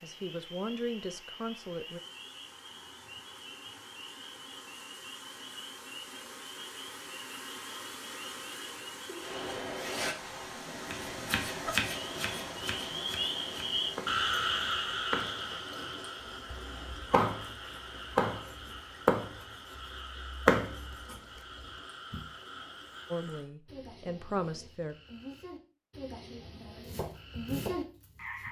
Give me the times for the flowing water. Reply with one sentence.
You can hear the flowing water from 0.0 to 23.5 s.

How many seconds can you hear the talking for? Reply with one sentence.
The talking can be heard for 4 seconds in total.